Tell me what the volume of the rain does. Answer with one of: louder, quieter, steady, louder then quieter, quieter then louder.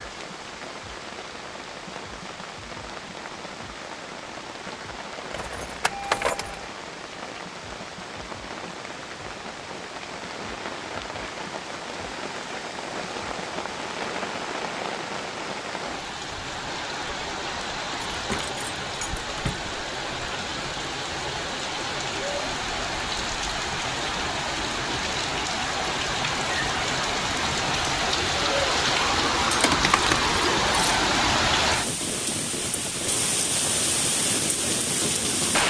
louder.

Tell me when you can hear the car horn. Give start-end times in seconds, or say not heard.
not heard.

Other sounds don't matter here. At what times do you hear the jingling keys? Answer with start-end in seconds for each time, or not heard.
5.3-6.6, 18.1-19.6, 29.5-31.0.